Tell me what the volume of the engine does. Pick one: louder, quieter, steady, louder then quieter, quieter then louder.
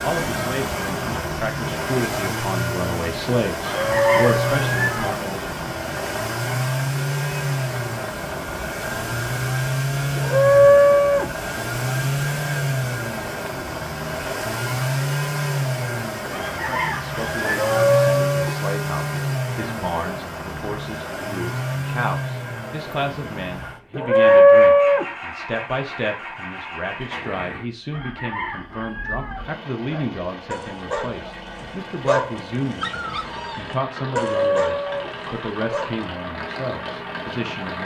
quieter.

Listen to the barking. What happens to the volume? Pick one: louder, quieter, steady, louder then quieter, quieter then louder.
louder then quieter.